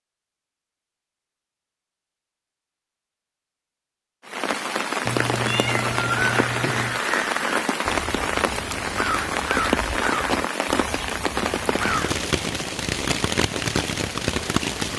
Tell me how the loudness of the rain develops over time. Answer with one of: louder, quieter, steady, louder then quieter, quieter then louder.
steady.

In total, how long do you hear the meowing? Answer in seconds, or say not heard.
2 s.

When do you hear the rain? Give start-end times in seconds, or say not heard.
4.2-14.9.